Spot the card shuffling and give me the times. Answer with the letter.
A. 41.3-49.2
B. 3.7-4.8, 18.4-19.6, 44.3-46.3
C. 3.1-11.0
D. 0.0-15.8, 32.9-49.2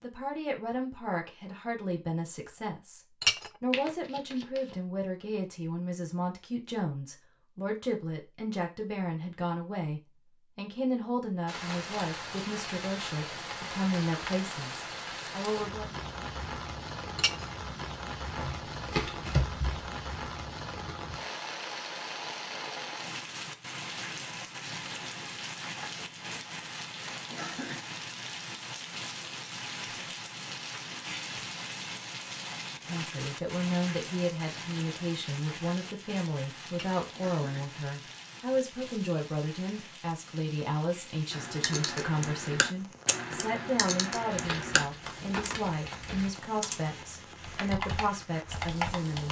B.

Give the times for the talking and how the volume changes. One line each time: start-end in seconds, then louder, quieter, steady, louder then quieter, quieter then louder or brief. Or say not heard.
0.0-15.8 steady
32.9-49.2 steady.